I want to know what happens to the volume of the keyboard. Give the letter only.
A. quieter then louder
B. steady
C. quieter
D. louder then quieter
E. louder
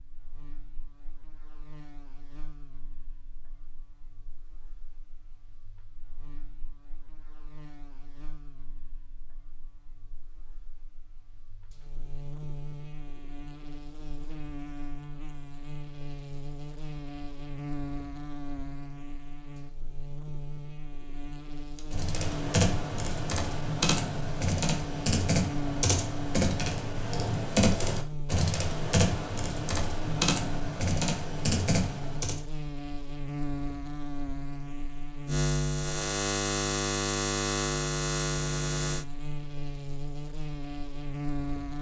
B.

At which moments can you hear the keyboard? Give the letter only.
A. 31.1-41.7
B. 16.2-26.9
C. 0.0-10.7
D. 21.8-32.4
D.